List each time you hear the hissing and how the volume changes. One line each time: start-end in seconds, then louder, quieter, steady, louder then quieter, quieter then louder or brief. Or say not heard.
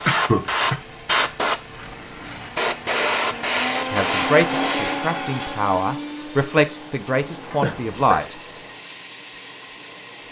0.0-10.2 quieter.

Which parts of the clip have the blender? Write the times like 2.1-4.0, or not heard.
0.2-10.2.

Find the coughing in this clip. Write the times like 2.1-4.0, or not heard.
0.1-0.8, 7.6-8.2.